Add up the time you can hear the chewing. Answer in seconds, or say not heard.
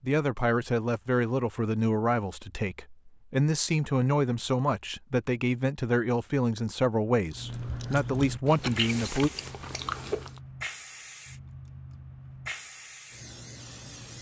3 s.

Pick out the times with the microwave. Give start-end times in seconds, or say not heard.
not heard.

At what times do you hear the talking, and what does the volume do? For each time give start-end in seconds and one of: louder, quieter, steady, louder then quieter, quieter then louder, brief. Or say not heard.
0.0-9.3 steady.